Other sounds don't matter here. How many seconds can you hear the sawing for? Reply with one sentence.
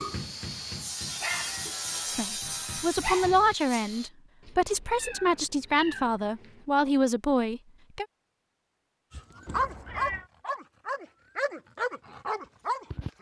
You can hear the sawing for 4 seconds altogether.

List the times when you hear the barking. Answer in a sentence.
The barking can be heard from 0.0 to 3.5 s and from 9.1 to 13.1 s.